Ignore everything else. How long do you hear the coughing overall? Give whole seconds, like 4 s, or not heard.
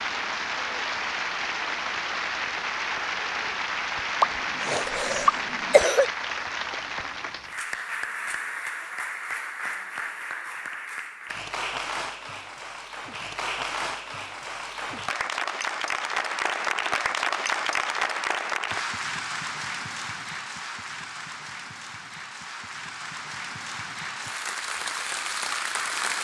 2 s.